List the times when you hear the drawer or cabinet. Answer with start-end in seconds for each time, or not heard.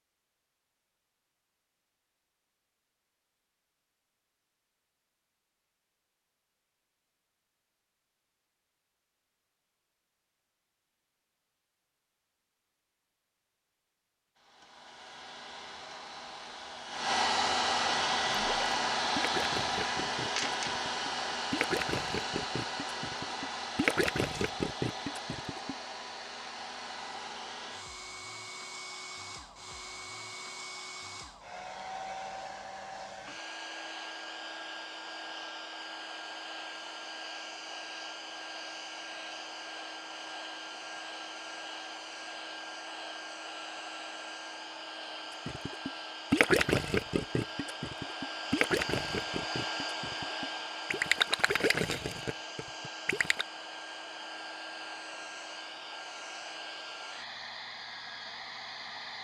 not heard.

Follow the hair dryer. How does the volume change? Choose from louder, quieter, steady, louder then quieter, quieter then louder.
quieter.